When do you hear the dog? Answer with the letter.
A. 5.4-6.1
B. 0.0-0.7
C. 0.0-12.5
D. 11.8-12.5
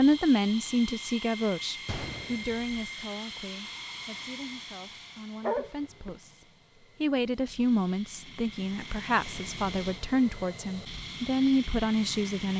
A.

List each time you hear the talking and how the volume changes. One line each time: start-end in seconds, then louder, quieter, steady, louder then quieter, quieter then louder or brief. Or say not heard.
0.0-12.5 quieter then louder.